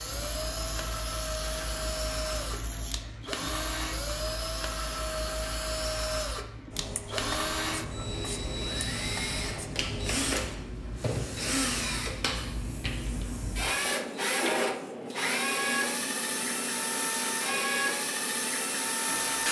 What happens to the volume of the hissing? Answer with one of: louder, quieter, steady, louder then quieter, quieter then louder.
steady.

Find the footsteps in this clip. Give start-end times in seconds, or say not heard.
not heard.